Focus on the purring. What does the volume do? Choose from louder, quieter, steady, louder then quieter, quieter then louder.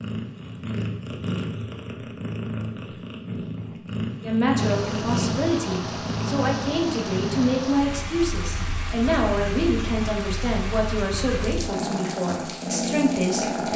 quieter then louder.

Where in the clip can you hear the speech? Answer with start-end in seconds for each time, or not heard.
4.2-13.7.